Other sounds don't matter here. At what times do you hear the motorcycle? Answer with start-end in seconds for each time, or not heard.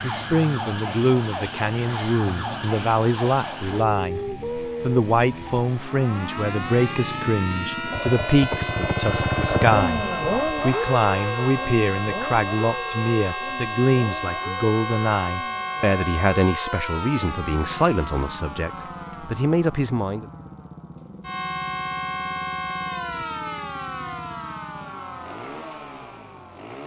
0.0-26.8.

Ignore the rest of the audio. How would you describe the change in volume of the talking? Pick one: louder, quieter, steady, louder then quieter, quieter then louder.
steady.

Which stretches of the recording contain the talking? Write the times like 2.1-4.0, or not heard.
0.0-20.2.